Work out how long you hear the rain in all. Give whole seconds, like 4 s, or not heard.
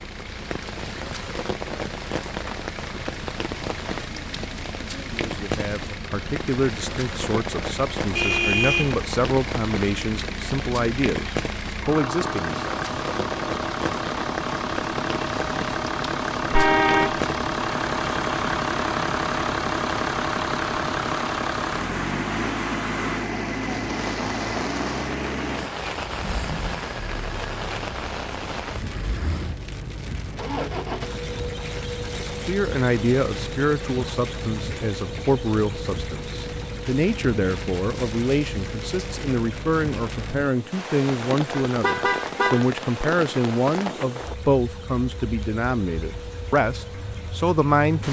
48 s.